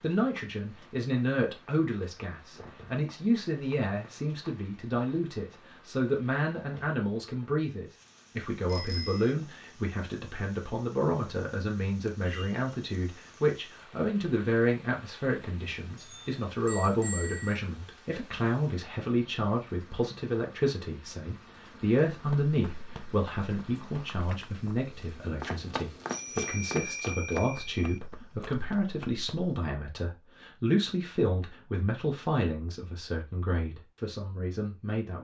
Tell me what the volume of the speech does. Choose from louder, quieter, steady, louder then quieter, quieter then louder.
steady.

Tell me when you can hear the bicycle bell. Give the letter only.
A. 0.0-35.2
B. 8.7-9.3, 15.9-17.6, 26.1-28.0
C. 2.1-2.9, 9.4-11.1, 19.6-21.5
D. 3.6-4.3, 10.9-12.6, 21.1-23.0
B.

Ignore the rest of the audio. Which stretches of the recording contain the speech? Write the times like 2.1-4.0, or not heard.
0.0-35.2.